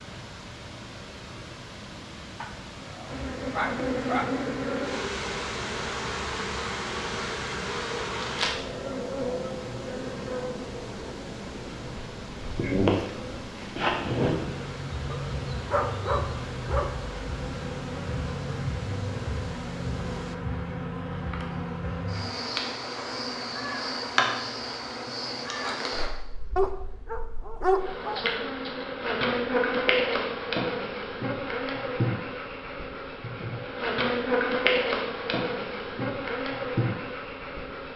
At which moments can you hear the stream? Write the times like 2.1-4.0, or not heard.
0.0-20.4.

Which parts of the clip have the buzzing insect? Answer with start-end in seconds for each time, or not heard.
3.0-37.9.